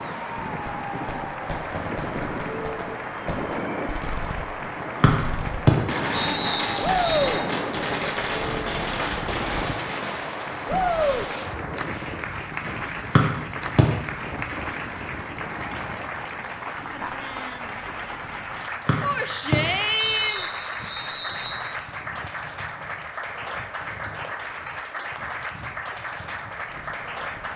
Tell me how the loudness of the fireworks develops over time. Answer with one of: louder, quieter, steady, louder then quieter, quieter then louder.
louder.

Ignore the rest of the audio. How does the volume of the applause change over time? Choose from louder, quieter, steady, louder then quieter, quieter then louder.
steady.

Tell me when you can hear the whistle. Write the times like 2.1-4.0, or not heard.
5.0-7.3, 13.2-13.8, 18.9-21.6.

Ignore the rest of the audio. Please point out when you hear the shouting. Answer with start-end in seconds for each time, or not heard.
6.8-7.4, 10.7-11.2, 19.0-20.5.